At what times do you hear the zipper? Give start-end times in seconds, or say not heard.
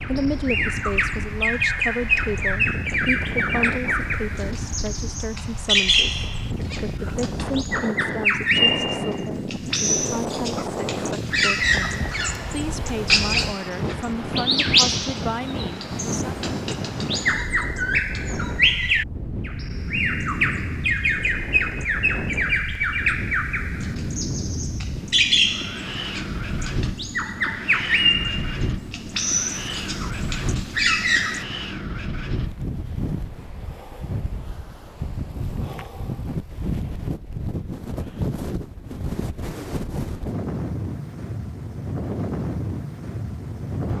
not heard.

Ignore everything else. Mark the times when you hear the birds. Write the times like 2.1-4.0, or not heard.
0.0-31.4.